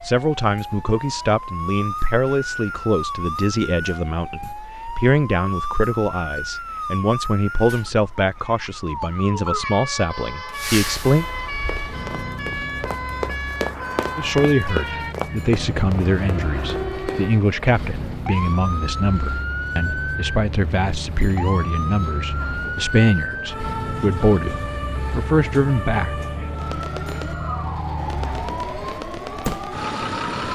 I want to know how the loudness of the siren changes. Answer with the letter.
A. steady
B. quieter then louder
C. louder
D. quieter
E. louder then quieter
A.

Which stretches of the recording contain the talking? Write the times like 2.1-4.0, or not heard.
0.0-11.2, 14.2-26.2.